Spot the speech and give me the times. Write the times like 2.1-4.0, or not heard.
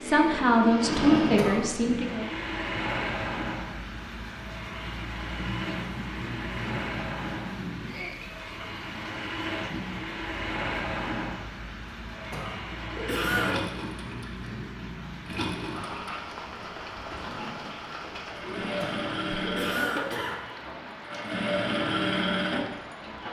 0.0-2.3.